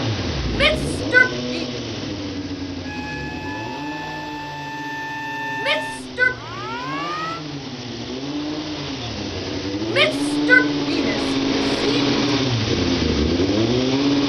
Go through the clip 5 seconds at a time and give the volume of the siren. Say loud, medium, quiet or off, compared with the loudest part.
loud, loud, off.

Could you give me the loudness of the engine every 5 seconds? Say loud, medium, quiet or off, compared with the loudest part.
medium, medium, loud.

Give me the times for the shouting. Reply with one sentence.
You can hear the shouting from 0.5 to 1.7 s, from 5.5 to 6.4 s and from 9.9 to 12.2 s.